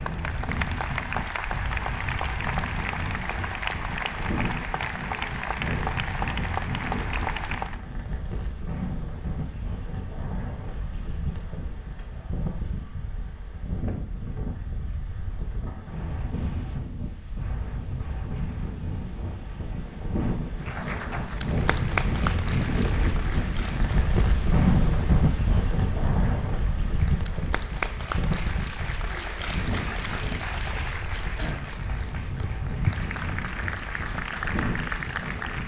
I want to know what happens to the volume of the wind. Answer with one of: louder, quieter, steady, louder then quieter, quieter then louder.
louder then quieter.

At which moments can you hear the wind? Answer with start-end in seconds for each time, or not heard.
0.0-35.6.